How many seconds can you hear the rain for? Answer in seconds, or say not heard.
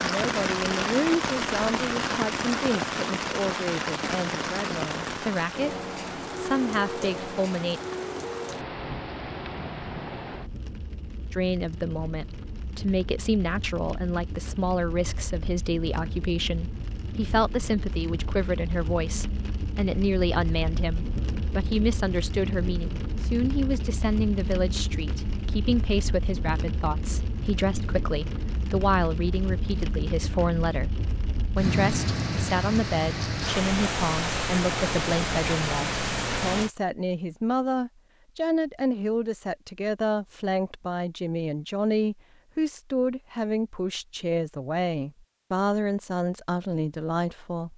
37 s.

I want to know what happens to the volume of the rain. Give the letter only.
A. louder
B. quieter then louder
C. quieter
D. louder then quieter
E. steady
B.